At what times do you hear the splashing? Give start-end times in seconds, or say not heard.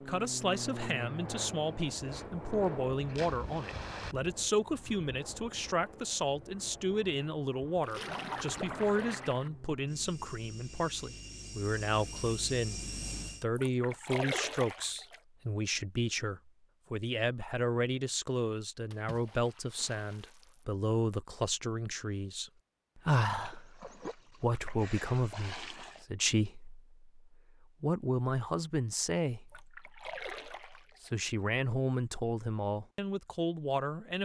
2.5-4.2, 7.8-9.5, 13.6-15.2, 18.9-20.6, 23.1-26.1, 29.4-31.1.